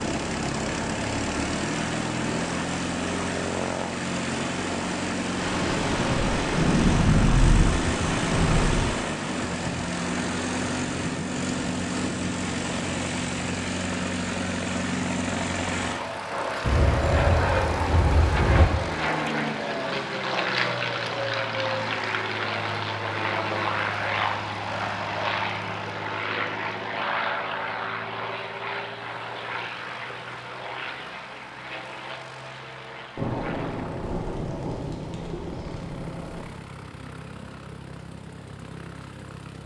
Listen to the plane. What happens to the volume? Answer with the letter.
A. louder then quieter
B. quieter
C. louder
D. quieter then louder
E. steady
B.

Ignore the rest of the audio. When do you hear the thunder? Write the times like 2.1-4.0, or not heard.
5.3-8.9, 16.6-18.6, 33.1-36.5.